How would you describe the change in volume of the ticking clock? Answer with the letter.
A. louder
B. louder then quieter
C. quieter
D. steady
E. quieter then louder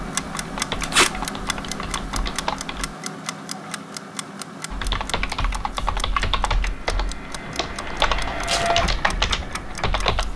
C.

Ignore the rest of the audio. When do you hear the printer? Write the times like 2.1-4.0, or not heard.
6.5-10.1.